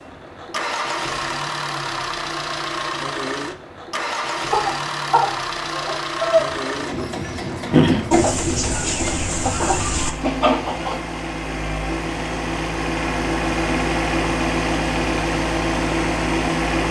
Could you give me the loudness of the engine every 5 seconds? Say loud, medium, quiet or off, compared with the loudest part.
medium, medium, loud, loud.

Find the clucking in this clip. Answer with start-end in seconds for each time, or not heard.
4.5-11.0.